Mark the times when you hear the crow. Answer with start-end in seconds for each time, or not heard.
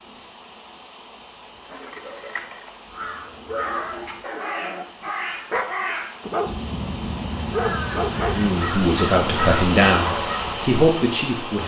2.9-10.6.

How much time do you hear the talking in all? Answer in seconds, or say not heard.
3 s.